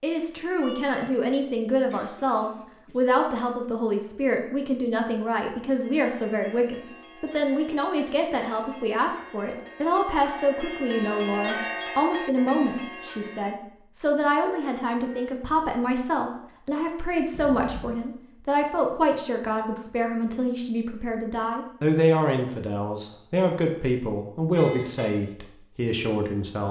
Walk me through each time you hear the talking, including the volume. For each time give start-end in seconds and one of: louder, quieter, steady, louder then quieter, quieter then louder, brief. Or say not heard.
0.0-26.6 steady.